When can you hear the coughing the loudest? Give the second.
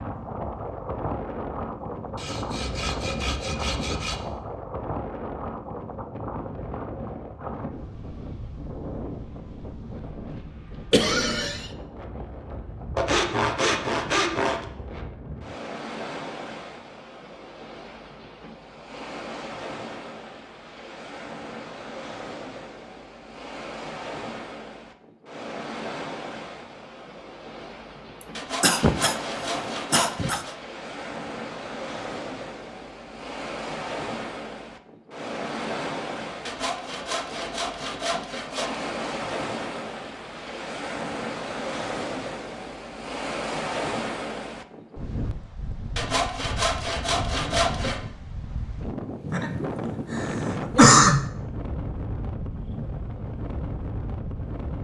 51 s.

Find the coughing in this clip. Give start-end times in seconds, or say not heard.
10.9-11.7, 28.2-29.2, 29.9-30.4, 49.3-51.3.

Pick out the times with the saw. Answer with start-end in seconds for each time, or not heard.
2.1-4.2, 12.9-14.7, 28.4-30.6, 36.5-38.9, 46.0-48.0.